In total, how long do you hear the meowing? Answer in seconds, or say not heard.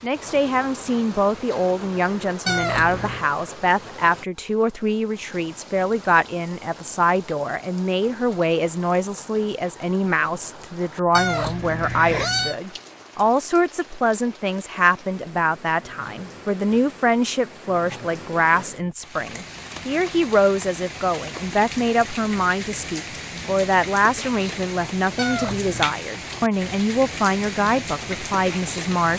3 s.